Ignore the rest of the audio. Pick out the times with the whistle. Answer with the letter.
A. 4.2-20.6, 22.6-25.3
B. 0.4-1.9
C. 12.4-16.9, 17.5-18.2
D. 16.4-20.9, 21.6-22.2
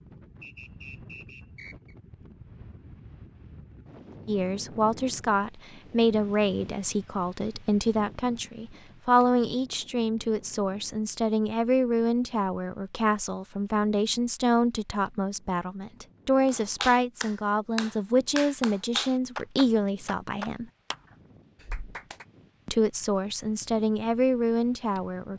B.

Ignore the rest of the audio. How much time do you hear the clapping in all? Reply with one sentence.
You can hear the clapping for 5 seconds altogether.